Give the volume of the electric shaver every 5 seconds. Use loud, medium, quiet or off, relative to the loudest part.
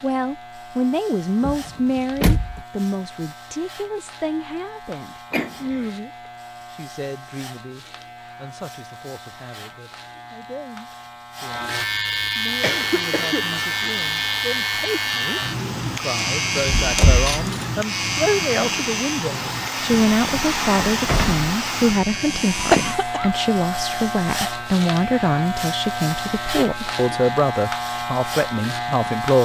quiet, quiet, loud, loud, loud, loud.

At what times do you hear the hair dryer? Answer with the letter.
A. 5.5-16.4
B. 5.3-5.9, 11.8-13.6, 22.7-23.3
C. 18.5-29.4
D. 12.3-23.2
D.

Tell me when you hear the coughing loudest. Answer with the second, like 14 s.
23 s.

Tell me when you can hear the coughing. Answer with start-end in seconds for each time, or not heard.
5.3-5.9, 11.8-13.6, 22.7-23.3.